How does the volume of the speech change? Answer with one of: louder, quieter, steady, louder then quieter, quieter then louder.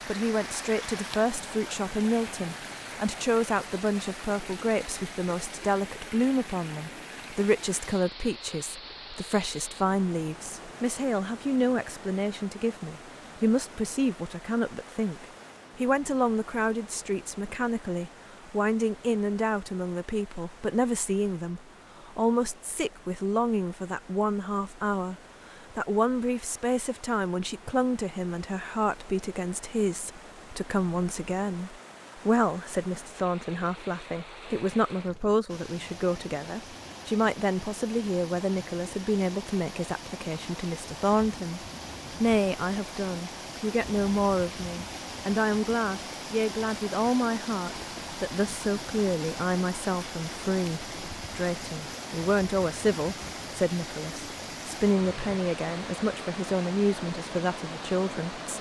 steady.